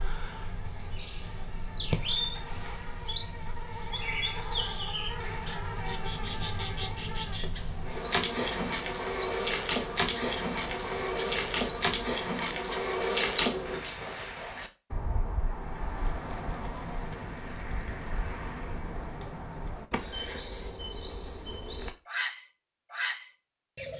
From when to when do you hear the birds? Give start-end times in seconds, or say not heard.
0.0-23.9.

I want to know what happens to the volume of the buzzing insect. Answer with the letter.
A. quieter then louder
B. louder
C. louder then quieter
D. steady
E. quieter
B.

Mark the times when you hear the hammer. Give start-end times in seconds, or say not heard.
not heard.